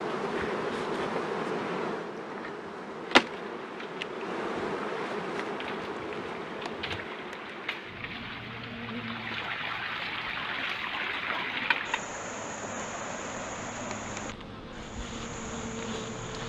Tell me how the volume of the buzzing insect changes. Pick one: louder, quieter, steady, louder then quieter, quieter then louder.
quieter then louder.